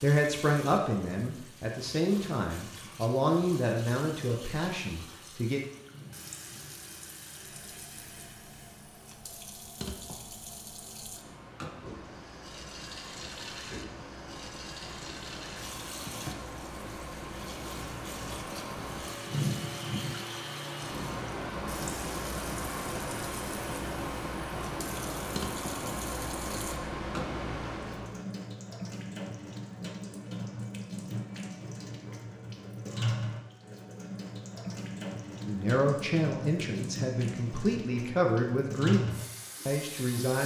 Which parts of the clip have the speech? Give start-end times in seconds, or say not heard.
0.0-5.6, 35.4-40.4.